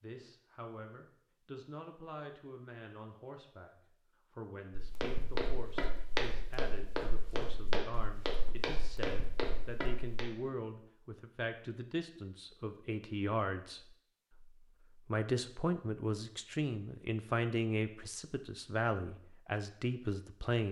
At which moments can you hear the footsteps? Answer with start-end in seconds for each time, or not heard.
4.8-10.2.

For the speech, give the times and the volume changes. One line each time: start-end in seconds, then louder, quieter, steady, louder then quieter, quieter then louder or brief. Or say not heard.
0.0-20.6 louder.